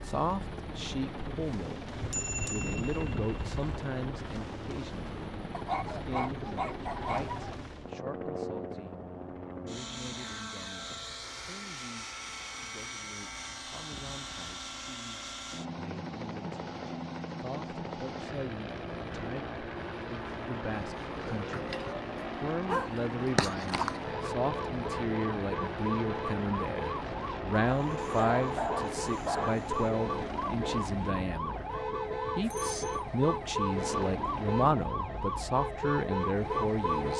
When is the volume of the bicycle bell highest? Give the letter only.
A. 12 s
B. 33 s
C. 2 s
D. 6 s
C.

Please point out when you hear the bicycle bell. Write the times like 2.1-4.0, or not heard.
2.0-3.9, 32.4-33.0.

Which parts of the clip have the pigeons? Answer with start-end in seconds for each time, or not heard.
not heard.